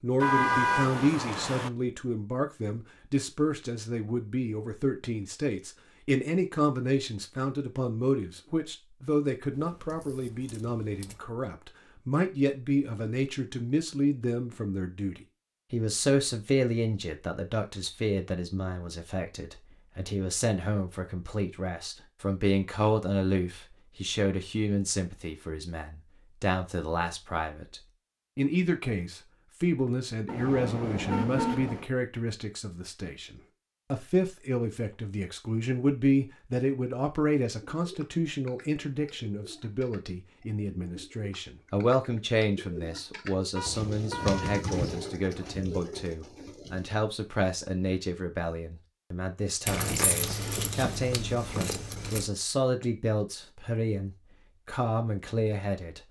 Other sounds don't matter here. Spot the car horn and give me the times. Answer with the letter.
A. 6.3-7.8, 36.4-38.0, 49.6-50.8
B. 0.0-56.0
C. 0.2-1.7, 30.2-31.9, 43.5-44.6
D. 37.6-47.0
C.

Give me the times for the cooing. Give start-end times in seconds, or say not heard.
37.6-47.0.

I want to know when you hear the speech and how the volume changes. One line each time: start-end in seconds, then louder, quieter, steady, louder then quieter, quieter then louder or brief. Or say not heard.
0.0-56.0 steady.